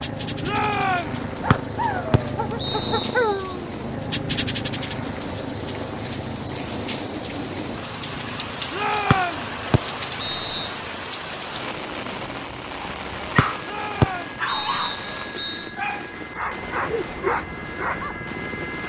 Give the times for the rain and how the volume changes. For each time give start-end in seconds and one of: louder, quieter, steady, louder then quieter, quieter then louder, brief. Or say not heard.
0.0-18.8 louder then quieter.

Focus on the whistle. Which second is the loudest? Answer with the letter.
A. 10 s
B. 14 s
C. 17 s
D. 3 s
B.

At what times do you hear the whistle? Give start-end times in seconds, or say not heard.
1.5-3.4, 9.1-10.8, 13.3-15.7.